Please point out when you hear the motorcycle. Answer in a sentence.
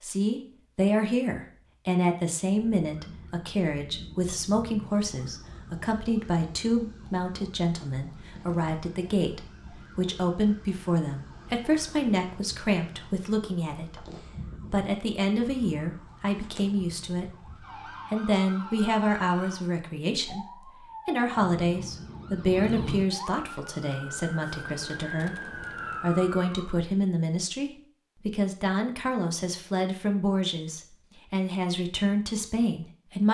You can't hear the motorcycle here.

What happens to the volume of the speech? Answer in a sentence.
The volume of the speech stays about the same.